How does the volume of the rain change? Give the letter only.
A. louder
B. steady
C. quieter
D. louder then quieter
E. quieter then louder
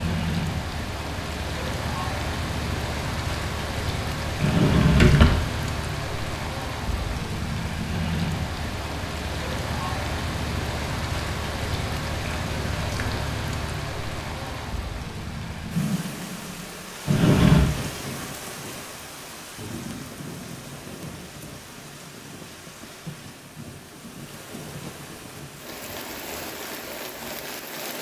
C.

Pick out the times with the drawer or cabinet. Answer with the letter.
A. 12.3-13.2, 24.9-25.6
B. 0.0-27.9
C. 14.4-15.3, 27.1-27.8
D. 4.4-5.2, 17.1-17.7
D.